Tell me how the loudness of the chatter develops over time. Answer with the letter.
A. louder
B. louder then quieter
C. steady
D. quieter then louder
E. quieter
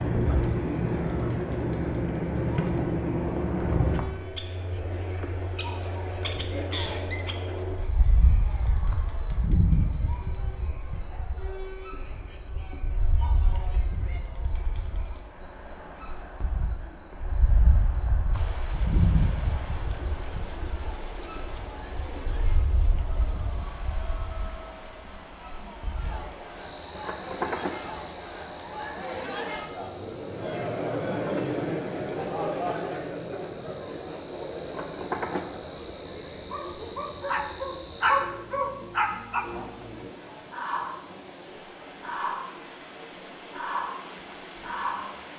B.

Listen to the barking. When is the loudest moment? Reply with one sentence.
The loudest moment of the barking is at 38 seconds.